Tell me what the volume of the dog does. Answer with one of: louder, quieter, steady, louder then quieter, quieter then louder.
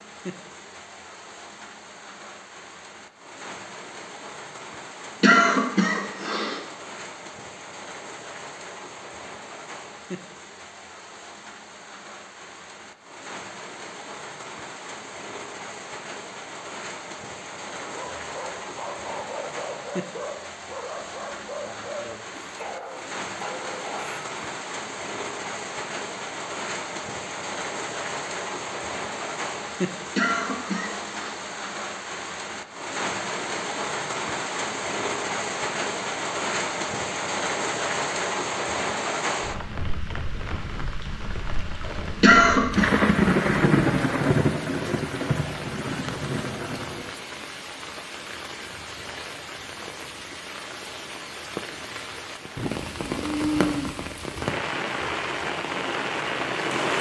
steady.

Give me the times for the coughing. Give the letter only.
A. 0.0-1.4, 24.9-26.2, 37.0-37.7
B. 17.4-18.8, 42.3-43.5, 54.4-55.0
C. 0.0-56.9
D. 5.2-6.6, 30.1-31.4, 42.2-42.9
D.